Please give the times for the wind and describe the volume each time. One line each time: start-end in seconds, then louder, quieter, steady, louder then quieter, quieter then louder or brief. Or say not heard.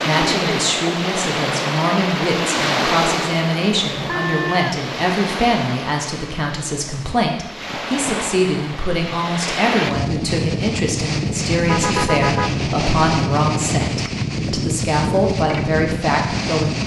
0.0-16.8 quieter then louder.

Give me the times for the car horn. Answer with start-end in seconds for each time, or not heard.
4.0-4.8, 11.6-12.6.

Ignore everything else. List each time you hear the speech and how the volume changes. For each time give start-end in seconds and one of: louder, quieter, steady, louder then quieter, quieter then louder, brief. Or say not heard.
0.1-16.8 steady.